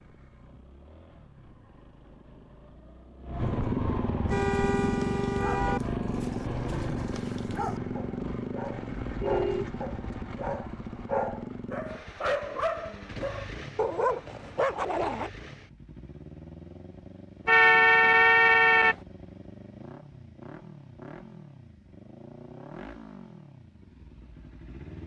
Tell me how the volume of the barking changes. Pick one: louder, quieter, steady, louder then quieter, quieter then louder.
louder.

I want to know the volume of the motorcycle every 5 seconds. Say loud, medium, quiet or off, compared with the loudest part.
loud, loud, medium, quiet, quiet.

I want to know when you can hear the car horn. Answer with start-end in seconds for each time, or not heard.
4.2-5.8, 9.1-10.6, 17.4-18.9.